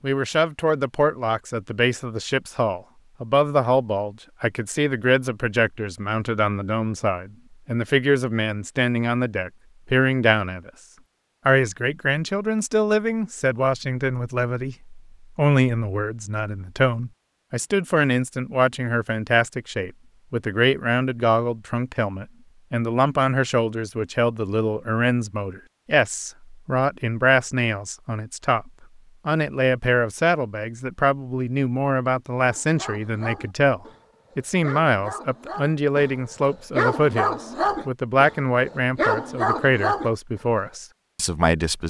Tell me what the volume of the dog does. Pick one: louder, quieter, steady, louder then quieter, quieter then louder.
louder.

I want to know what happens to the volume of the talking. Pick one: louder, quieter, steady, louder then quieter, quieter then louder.
steady.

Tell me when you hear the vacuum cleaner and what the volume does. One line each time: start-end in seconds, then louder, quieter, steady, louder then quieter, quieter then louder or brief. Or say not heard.
not heard.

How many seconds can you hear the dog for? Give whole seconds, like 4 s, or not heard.
8 s.